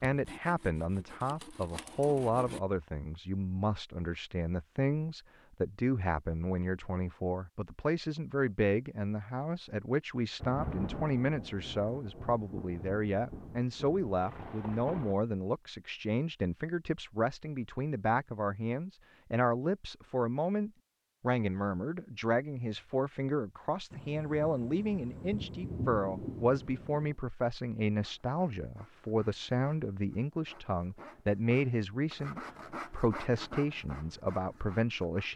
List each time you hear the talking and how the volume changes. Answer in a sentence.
You can hear the talking from 0.0 to 35.3 s, at a steady volume.